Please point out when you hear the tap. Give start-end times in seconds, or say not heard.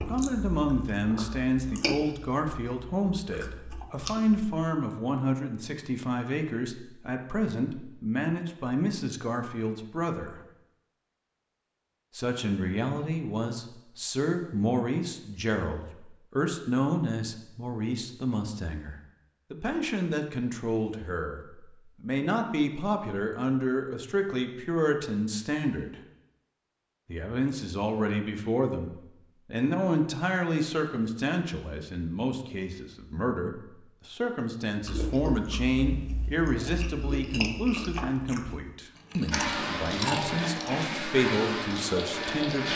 39.3-42.7.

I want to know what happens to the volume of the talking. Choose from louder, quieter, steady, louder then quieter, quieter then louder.
steady.